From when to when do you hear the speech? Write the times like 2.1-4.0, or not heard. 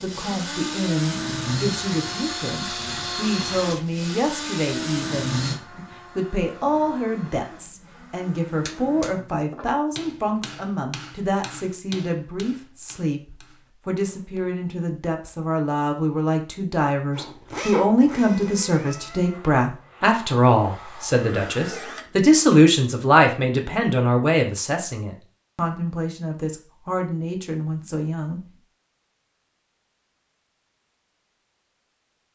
0.0-28.4.